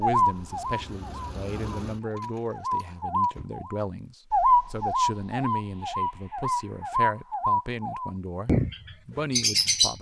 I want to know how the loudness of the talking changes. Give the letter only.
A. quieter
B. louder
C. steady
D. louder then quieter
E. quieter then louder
C.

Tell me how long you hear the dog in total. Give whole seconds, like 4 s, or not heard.
not heard.